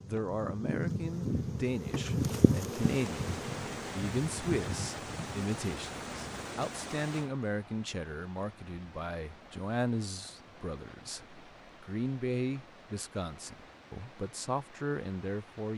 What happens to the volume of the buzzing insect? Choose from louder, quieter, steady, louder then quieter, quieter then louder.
quieter.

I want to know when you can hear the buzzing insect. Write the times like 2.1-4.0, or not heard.
0.0-6.5.